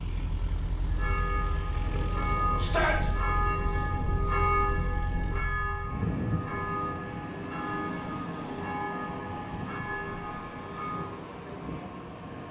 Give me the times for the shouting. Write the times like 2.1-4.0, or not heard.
2.5-3.1.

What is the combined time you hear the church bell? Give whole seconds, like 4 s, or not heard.
10 s.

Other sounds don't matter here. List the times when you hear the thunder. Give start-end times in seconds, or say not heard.
1.8-5.4.